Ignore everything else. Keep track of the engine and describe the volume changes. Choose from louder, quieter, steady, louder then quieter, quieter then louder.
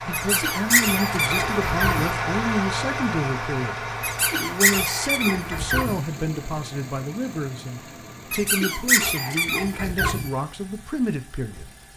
quieter.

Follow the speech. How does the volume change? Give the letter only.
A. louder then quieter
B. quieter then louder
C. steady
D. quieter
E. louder
C.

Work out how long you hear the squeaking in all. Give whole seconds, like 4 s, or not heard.
6 s.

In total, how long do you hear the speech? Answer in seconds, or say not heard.
12 s.